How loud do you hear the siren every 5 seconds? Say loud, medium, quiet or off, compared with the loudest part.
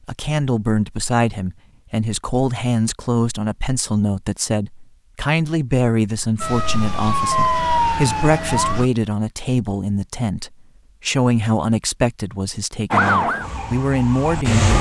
off, loud, loud.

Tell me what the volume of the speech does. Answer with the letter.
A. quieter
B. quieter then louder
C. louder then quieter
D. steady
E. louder
D.